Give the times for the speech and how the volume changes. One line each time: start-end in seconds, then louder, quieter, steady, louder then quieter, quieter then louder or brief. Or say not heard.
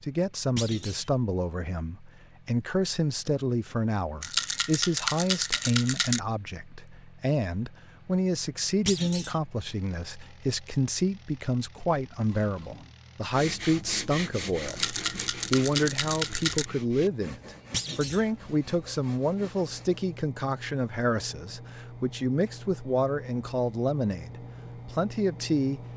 0.0-25.8 steady.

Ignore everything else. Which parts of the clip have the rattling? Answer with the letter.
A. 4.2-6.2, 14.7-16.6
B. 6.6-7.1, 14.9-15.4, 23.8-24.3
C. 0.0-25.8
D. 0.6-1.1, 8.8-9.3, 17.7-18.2
A.